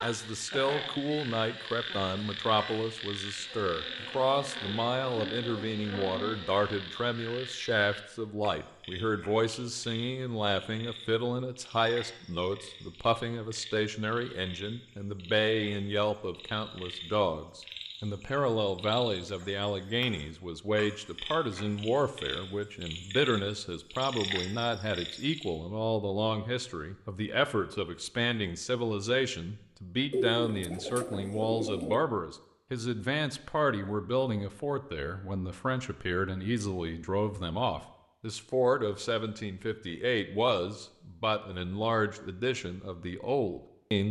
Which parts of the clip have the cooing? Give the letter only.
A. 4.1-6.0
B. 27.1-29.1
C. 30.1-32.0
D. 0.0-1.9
C.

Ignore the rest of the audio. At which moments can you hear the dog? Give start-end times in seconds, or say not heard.
not heard.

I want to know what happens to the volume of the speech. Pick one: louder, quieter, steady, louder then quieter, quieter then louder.
steady.